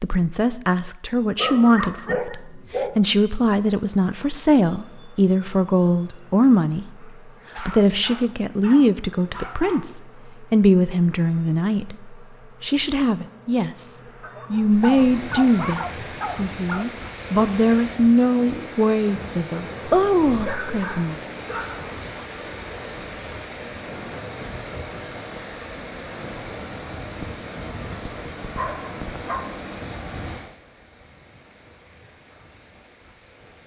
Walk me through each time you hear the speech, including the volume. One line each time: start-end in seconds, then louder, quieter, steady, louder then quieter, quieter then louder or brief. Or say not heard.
0.0-21.2 steady.